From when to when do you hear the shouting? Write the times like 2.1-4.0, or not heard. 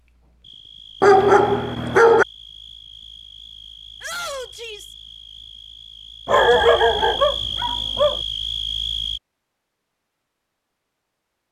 4.0-5.0.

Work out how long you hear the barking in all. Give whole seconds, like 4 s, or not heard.
3 s.